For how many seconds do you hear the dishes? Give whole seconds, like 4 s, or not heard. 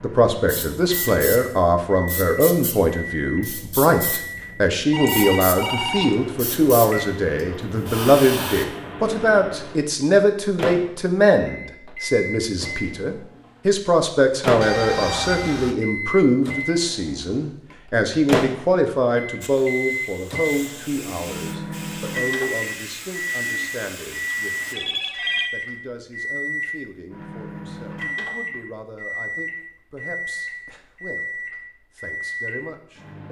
not heard.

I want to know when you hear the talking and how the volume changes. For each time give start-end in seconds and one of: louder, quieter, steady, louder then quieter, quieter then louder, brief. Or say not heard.
0.0-33.2 quieter.